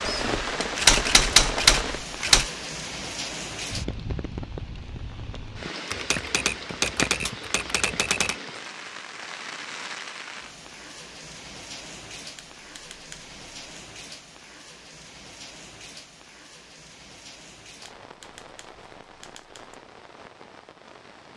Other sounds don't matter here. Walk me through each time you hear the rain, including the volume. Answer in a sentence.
The rain can be heard from 0.0 to 21.3 s, getting quieter.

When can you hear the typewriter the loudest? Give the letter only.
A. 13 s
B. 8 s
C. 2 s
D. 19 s
C.